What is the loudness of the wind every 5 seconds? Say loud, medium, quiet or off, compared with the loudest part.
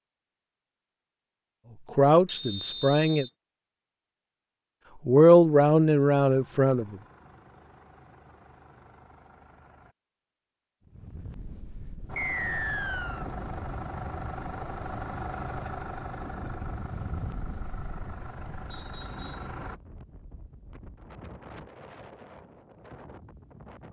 off, off, loud, loud, medium.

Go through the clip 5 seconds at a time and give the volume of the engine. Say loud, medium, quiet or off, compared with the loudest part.
off, quiet, loud, loud, off.